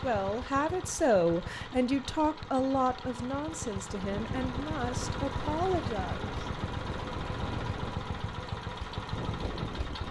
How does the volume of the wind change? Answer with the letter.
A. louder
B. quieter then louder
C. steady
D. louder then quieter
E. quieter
C.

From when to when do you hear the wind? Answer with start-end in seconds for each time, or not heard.
3.9-10.0.